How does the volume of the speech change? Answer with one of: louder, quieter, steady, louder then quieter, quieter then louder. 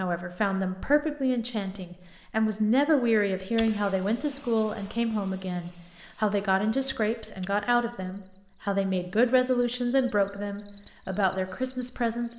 steady.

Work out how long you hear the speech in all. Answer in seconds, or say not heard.
12 s.